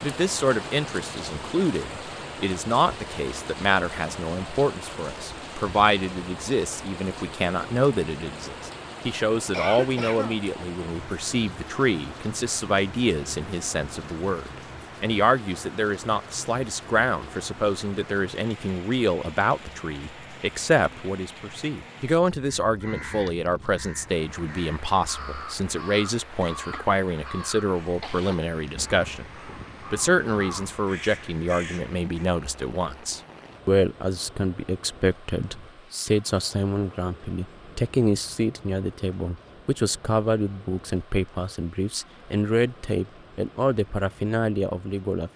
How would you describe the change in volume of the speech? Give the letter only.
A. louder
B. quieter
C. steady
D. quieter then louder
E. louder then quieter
C.